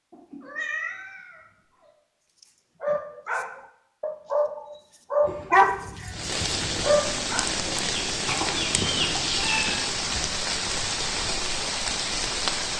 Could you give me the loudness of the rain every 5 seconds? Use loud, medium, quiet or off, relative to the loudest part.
off, loud, loud.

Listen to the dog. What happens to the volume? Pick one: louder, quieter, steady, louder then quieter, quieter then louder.
louder.